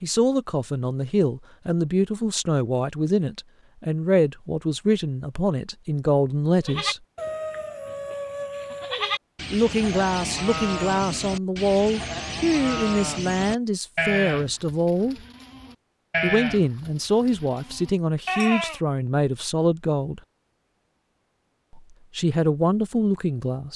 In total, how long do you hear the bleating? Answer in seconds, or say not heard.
12 s.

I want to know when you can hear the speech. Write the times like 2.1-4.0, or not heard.
0.0-7.0, 9.5-15.2, 16.2-20.2, 21.7-23.7.